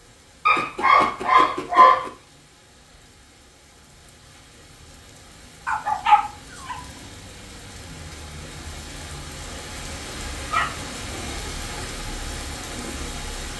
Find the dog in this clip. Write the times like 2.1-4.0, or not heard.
0.5-2.1, 5.7-6.8, 10.4-11.8.